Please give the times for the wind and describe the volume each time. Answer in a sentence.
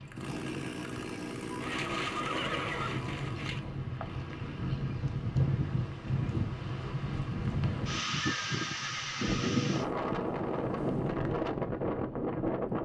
The wind can be heard from 0.0 to 12.7 s, getting louder.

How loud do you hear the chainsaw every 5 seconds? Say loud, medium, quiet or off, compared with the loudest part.
loud, medium, off.